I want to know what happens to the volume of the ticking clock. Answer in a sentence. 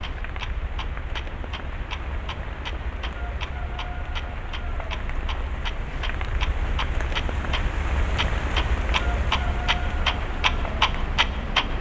The volume of the ticking clock goes up.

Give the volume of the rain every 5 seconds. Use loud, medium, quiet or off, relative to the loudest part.
medium, loud, loud.